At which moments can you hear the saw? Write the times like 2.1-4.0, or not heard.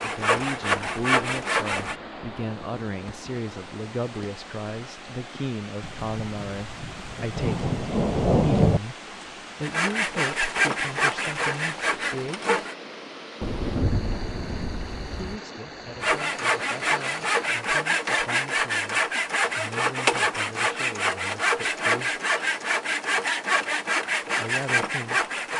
0.0-1.9, 9.6-12.8, 16.0-25.5.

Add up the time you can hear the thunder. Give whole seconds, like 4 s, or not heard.
5 s.